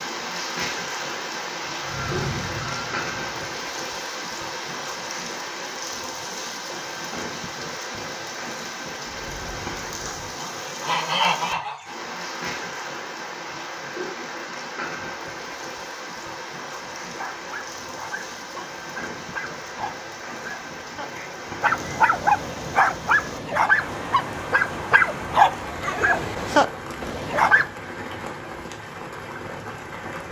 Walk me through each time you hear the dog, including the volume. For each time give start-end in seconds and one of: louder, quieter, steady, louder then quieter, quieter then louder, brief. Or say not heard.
17.0-27.6 louder.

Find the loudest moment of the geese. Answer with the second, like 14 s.
11 s.